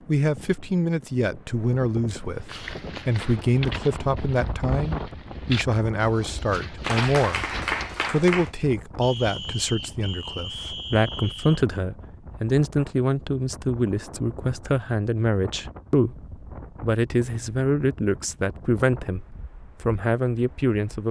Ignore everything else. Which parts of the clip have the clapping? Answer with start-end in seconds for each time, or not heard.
6.8-8.5.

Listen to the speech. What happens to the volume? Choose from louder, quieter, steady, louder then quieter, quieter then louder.
steady.